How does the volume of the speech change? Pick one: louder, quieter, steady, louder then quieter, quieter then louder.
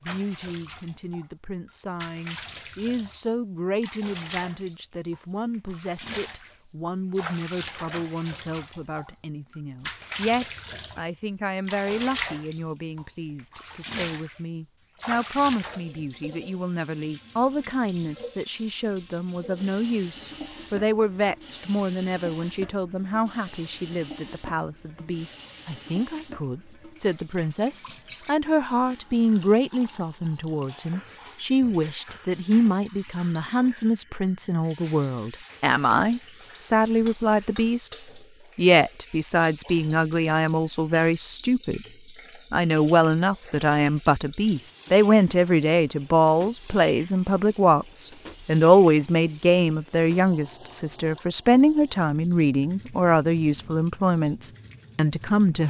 louder.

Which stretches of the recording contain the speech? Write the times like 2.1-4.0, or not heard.
0.0-38.0, 38.5-41.8, 42.5-55.6.